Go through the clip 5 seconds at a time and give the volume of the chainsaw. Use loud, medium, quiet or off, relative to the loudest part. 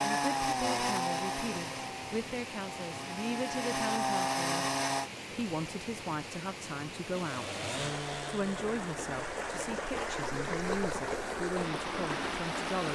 loud, medium, off.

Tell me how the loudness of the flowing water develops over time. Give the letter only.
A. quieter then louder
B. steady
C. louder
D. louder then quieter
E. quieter
C.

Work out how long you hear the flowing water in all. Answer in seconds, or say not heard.
13 s.